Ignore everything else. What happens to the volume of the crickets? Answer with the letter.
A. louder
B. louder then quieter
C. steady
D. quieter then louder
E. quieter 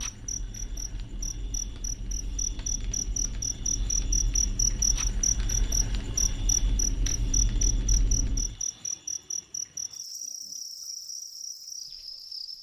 B.